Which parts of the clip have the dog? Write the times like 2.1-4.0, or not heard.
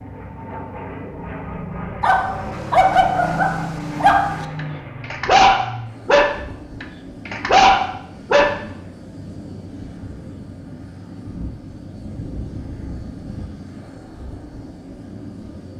2.0-8.6.